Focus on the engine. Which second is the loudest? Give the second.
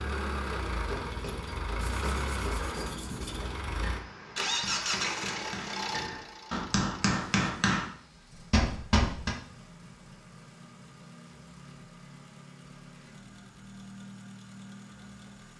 5 s.